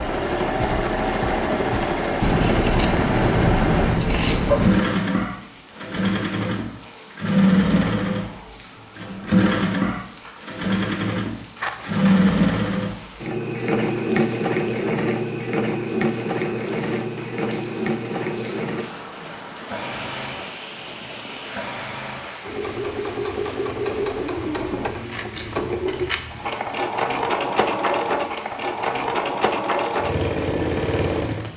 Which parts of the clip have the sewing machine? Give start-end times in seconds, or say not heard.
0.0-31.5.